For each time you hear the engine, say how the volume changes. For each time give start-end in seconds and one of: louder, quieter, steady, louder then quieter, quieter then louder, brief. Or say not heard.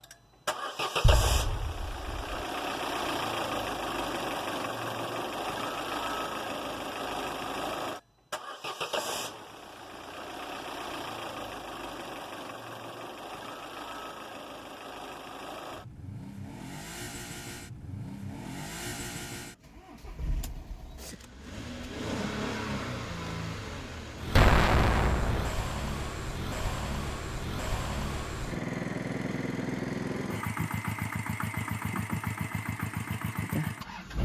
0.0-34.2 quieter then louder.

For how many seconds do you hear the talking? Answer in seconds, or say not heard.
not heard.